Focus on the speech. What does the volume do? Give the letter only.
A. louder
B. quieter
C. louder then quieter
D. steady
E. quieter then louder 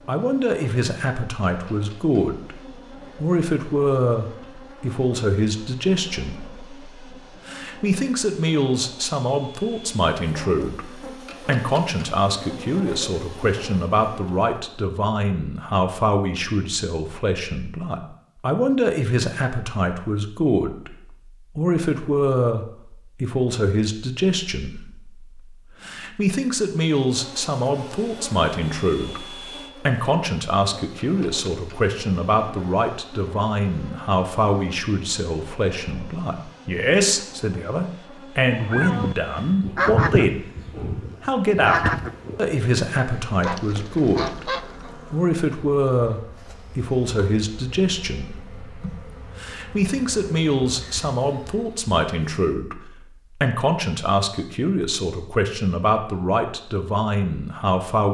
D.